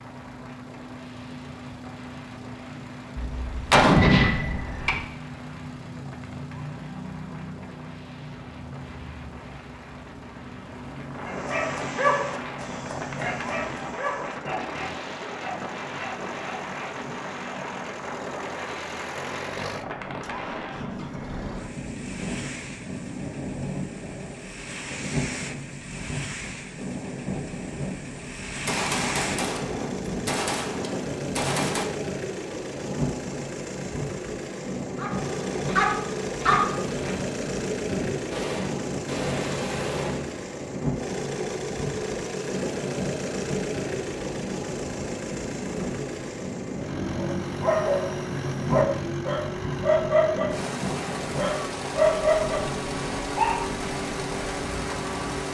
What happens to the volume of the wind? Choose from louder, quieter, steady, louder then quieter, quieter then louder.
louder.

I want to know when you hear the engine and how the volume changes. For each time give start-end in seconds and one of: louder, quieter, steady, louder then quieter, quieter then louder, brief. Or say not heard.
0.0-55.4 louder.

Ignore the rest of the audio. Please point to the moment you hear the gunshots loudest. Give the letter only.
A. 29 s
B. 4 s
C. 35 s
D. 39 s
B.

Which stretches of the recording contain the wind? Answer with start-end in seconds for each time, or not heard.
0.0-55.4.